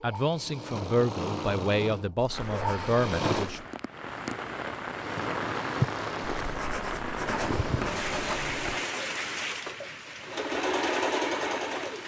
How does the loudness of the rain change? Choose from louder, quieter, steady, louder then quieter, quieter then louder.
louder then quieter.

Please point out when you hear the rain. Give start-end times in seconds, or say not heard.
2.2-12.0.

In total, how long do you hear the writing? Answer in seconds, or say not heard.
4 s.